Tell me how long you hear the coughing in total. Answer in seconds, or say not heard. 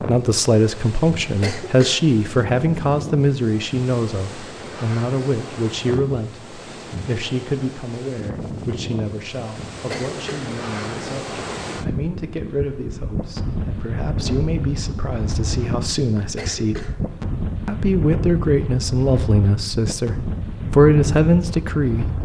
2 s.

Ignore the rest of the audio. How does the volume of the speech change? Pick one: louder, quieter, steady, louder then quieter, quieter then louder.
quieter then louder.